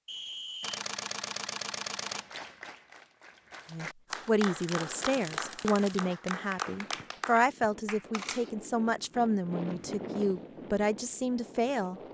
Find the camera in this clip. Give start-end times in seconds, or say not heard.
0.6-2.3, 4.0-6.0, 8.1-8.5.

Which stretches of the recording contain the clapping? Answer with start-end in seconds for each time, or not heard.
2.0-8.1.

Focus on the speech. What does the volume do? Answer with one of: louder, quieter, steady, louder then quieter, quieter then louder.
steady.